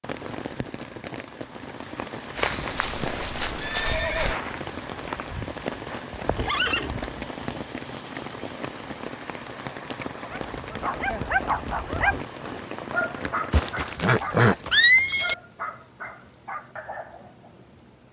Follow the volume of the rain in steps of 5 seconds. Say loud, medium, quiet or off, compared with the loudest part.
loud, loud, loud, quiet.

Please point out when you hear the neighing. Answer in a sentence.
You can hear the neighing from 2.6 to 4.3 s, from 6.1 to 6.9 s and from 13.5 to 15.3 s.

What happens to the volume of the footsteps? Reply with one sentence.
The volume of the footsteps goes down.